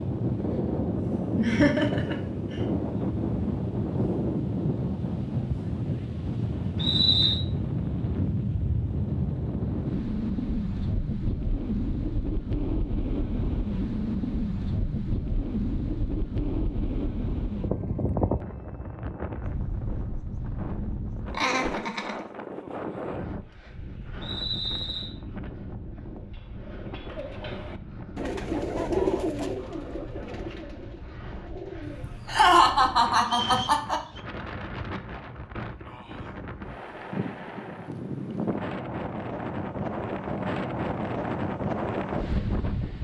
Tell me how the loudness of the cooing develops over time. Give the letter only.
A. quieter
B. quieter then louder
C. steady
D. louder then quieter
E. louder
D.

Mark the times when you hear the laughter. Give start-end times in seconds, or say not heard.
1.4-2.1, 21.3-22.1, 32.0-34.0.